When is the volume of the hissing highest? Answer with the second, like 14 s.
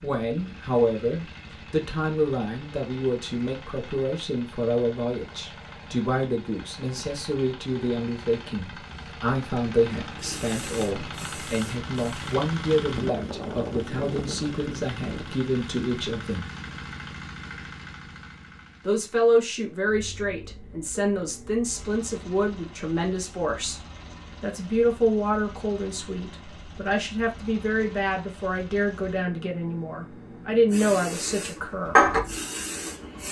32 s.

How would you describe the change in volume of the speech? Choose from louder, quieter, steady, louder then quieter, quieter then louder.
steady.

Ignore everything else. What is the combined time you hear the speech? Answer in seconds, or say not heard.
29 s.